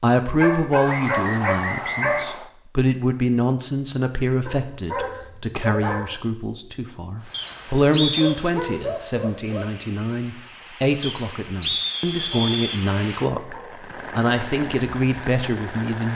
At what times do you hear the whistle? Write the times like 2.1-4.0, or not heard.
0.8-2.5, 7.3-8.3, 11.0-12.8.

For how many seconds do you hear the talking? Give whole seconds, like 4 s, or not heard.
16 s.